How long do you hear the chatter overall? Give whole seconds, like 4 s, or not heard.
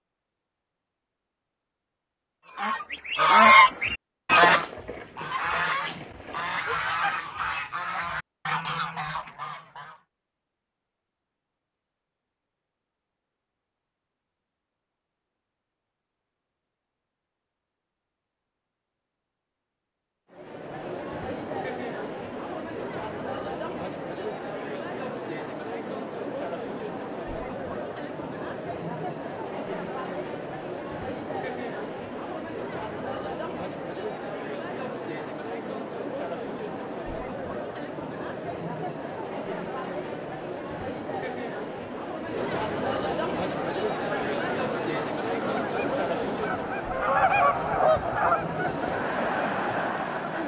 30 s.